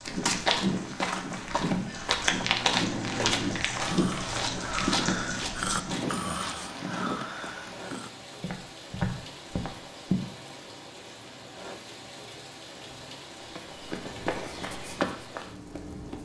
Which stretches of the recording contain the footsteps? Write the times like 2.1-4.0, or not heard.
0.1-10.2, 13.4-16.2.